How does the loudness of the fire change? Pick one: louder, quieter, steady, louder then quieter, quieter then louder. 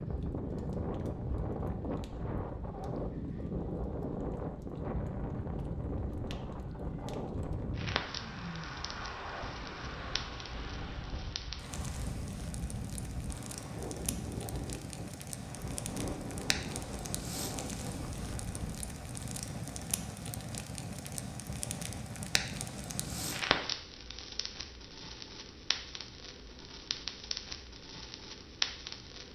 louder.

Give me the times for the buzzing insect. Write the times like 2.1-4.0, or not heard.
not heard.